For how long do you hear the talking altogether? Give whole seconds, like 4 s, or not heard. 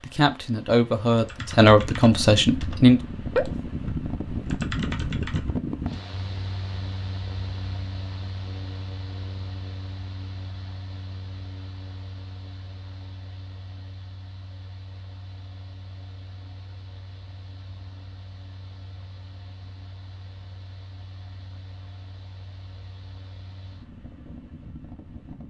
3 s.